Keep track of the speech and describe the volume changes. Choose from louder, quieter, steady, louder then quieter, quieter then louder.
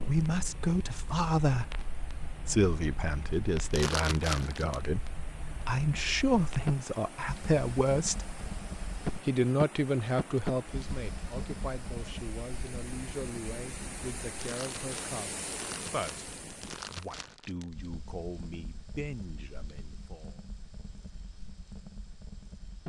quieter.